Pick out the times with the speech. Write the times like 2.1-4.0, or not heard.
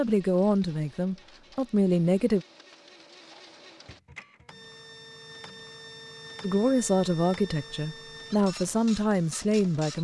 0.0-2.5, 6.4-9.9.